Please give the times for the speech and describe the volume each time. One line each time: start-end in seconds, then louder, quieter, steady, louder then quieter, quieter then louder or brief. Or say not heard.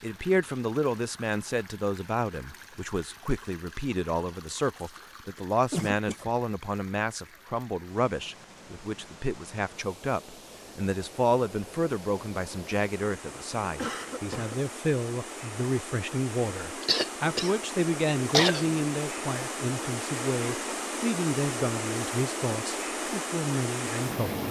0.0-24.4 steady.